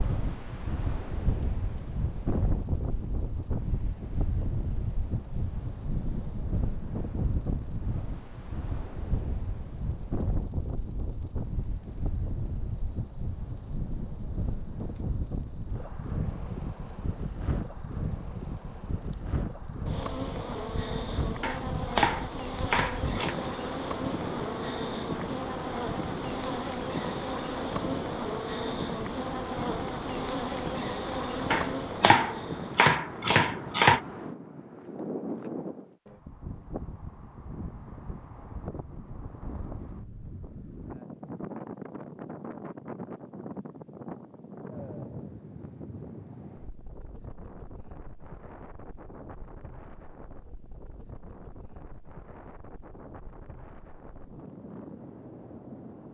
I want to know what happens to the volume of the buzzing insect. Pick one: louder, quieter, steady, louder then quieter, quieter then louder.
louder.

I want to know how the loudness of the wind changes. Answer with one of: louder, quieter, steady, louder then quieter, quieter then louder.
quieter.